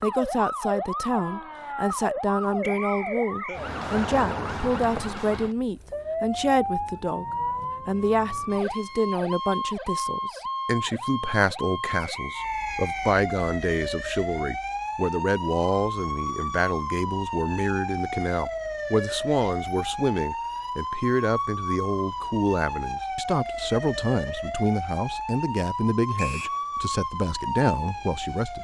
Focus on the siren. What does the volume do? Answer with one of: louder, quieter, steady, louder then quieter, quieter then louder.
steady.